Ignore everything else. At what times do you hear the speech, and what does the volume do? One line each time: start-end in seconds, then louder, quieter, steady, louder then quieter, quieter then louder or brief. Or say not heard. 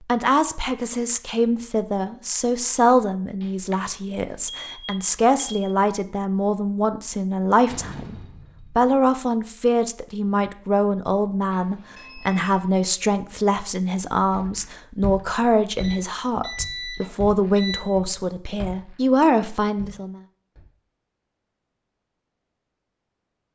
0.1-20.2 steady.